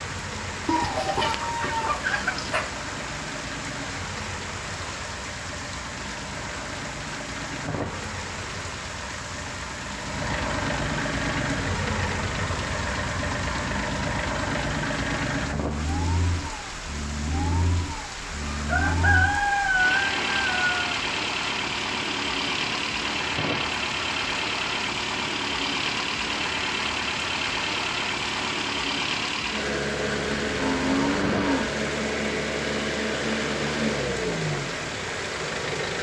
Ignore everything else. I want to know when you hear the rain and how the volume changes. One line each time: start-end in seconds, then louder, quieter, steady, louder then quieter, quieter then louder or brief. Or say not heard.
0.0-35.9 steady.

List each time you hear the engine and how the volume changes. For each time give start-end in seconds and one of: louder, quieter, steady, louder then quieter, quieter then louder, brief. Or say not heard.
0.0-35.9 louder.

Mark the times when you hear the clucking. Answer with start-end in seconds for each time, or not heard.
0.7-2.7, 18.4-20.9.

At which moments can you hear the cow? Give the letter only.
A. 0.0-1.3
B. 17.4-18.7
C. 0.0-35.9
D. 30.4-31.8
D.